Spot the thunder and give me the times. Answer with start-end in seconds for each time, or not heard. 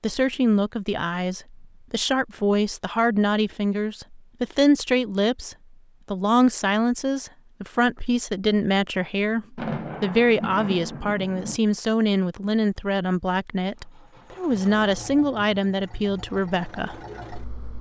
9.6-11.6.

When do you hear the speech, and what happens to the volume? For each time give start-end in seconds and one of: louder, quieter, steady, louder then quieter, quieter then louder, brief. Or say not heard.
0.0-16.9 steady.